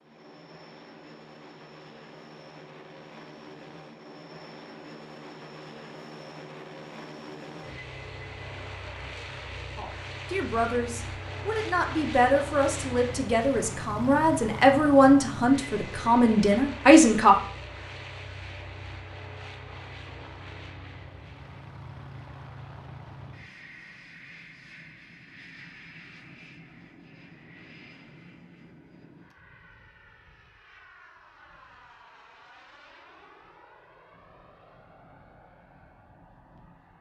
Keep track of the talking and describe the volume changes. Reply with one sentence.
The loudness of the talking goes up.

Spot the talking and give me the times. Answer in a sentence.
You can hear the talking from 9.8 to 17.4 s.